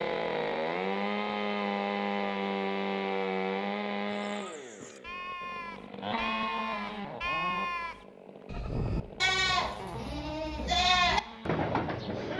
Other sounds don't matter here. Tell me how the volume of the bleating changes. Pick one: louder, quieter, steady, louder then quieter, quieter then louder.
louder.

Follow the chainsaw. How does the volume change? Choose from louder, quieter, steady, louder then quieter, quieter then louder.
quieter.